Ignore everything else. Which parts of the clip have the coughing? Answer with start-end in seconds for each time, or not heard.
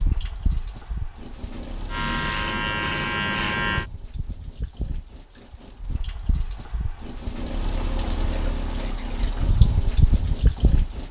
not heard.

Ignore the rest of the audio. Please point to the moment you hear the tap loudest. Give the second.
10 s.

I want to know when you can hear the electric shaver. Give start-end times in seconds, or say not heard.
1.9-3.9.